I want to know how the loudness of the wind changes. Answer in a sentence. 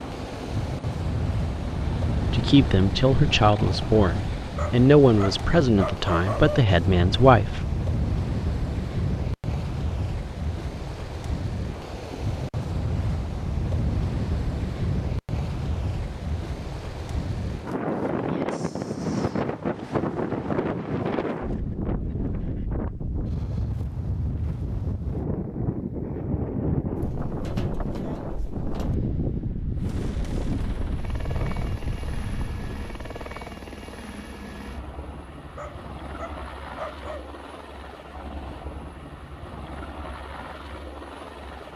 The volume of the wind stays about the same.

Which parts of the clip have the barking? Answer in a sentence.
You can hear the barking from 4.5 to 6.7 s and from 35.5 to 37.2 s.